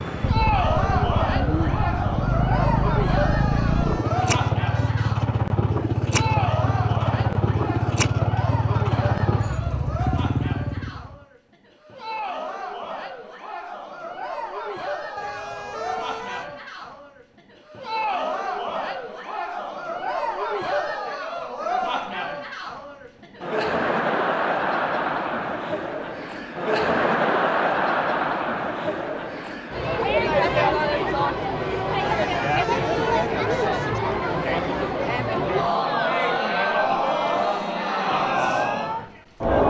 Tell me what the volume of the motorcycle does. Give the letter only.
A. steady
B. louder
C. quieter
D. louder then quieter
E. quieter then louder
A.